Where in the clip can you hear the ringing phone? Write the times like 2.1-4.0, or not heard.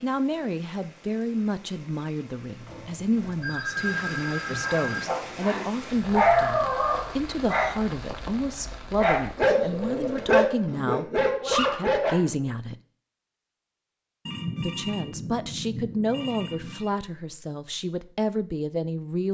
2.6-5.0, 14.2-16.9.